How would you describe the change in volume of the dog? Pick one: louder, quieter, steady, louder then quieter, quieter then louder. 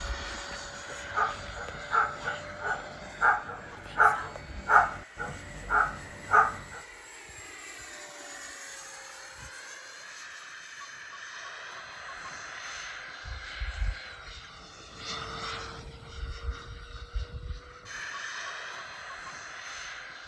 louder.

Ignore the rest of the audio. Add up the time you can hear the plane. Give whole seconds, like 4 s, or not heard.
20 s.